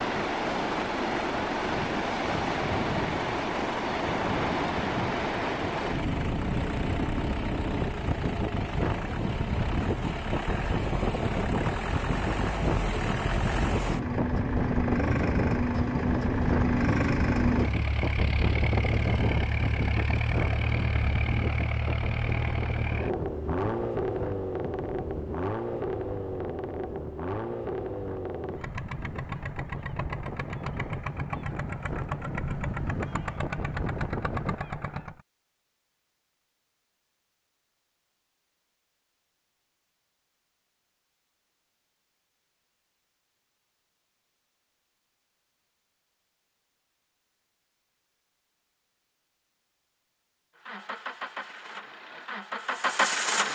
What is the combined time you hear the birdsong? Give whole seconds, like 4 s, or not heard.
not heard.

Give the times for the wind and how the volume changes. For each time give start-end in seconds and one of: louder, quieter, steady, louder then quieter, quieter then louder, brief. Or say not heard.
0.0-34.6 quieter.